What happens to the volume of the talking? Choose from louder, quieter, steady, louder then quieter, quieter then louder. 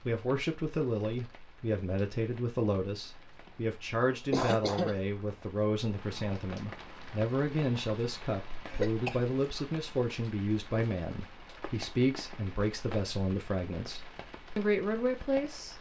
steady.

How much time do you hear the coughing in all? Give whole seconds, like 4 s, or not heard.
2 s.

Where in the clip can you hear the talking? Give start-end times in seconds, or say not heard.
0.1-15.7.